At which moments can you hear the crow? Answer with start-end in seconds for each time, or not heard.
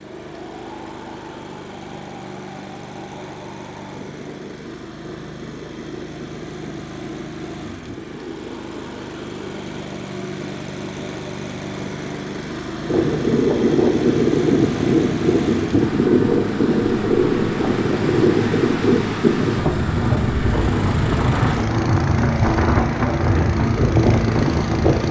not heard.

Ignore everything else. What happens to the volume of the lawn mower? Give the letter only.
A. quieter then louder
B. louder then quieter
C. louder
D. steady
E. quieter
C.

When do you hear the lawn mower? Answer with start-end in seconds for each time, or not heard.
0.0-25.0.